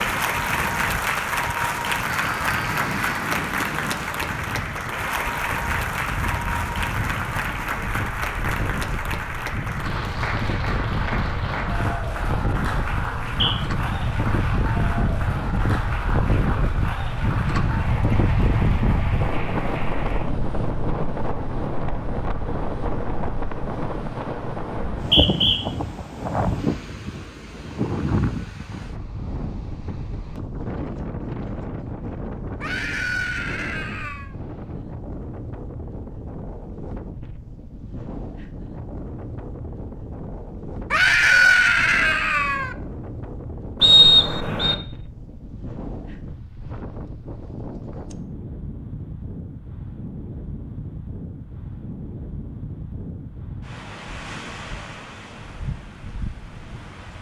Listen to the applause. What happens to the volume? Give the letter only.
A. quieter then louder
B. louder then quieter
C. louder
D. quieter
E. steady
D.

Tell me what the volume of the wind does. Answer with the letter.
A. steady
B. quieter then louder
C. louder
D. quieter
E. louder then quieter
E.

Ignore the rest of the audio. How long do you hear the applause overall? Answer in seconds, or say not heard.
20 s.